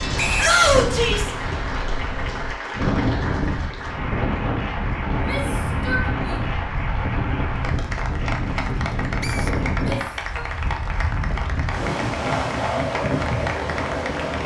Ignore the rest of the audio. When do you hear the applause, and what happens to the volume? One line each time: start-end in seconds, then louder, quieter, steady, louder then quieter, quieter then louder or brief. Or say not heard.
0.0-14.4 steady.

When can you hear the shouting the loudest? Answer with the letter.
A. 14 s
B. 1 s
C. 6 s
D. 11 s
B.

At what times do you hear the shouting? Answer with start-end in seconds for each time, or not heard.
0.3-1.3, 5.1-6.5, 9.8-10.4.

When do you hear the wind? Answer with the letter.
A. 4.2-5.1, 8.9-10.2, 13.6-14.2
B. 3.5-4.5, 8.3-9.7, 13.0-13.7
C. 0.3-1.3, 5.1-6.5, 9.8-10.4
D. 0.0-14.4
D.